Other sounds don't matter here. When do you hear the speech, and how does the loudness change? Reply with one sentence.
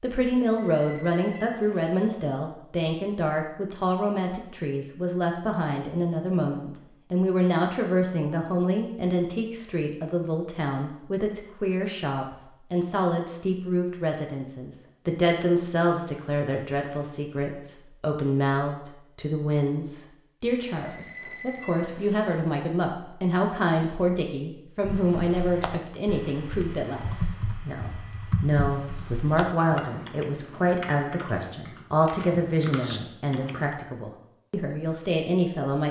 You can hear the speech from 0.0 to 35.8 s, at a steady volume.